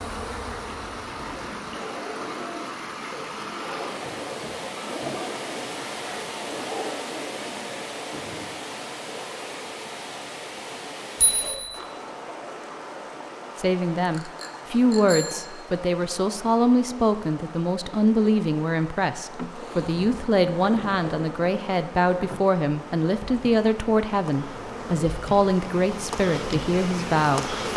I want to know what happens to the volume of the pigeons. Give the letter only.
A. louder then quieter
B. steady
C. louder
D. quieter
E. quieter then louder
B.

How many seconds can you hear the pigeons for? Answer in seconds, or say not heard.
7 s.